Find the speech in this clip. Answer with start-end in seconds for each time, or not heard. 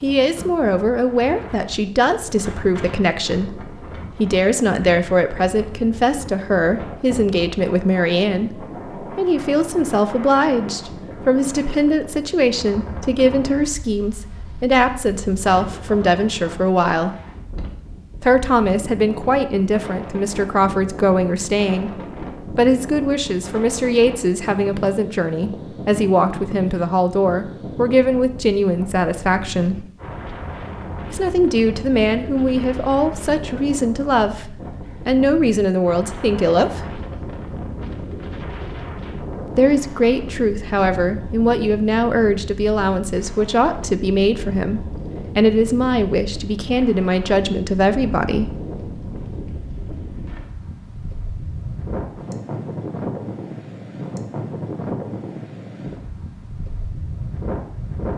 0.0-17.1, 18.2-29.9, 31.1-37.0, 39.5-48.5.